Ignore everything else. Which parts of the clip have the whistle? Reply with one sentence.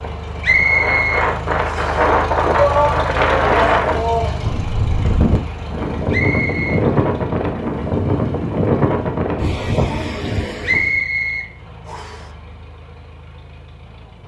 You can hear the whistle from 0.4 to 2.0 s, from 6.1 to 6.8 s and from 10.6 to 12.2 s.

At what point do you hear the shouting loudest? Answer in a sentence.
The volume of the shouting peaks at 3 seconds.